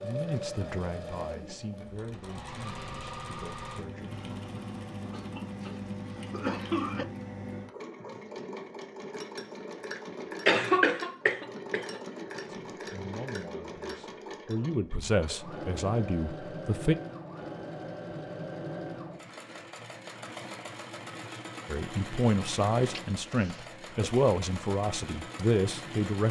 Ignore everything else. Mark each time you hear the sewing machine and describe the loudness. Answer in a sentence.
The sewing machine can be heard from 0.0 to 26.2 s, at a steady volume.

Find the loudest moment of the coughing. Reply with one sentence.
The volume of the coughing peaks at 11 seconds.